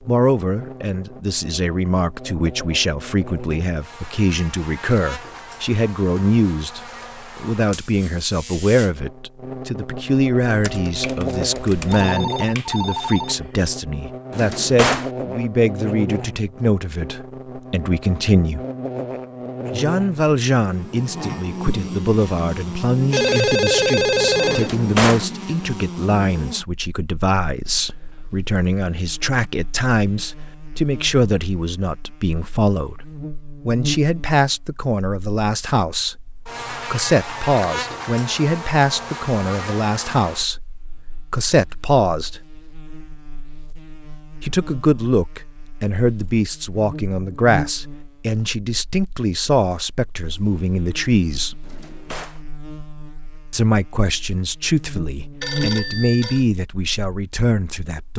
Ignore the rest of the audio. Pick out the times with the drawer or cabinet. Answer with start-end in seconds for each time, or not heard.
14.3-15.1, 24.5-25.3, 51.6-52.4.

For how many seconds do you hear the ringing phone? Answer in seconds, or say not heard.
5 s.